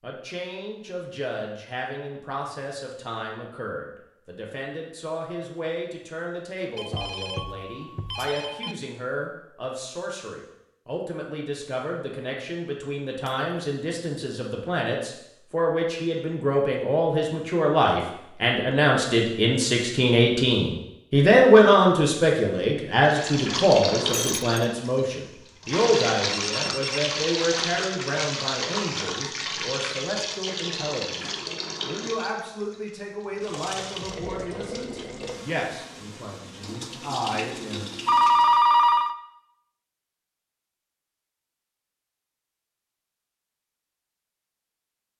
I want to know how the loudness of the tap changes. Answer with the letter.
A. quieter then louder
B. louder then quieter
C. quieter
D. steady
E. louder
C.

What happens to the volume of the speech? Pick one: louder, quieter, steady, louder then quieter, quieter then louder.
louder then quieter.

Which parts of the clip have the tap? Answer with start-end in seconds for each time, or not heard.
23.1-38.6.